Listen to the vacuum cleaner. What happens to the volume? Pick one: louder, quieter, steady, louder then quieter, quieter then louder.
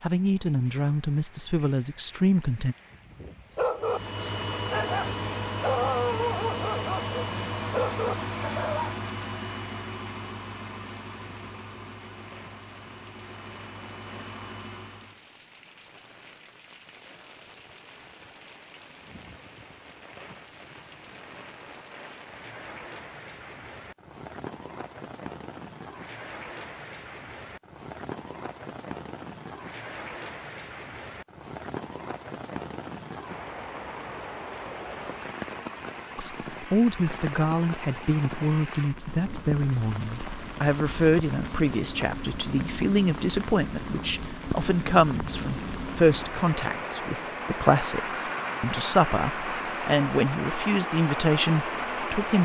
quieter.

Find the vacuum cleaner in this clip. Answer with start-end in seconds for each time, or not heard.
3.8-15.2.